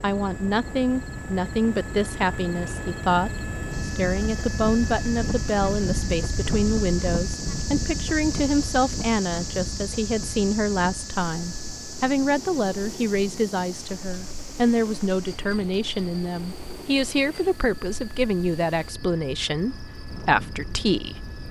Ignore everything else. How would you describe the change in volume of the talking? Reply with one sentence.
The loudness of the talking stays about the same.